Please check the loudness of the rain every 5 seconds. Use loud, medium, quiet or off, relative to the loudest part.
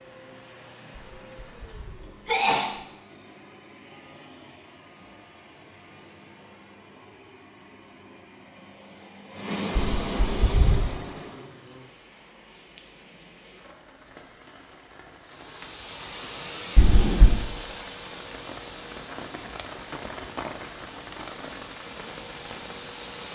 off, off, medium, loud, loud.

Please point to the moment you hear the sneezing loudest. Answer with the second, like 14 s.
2 s.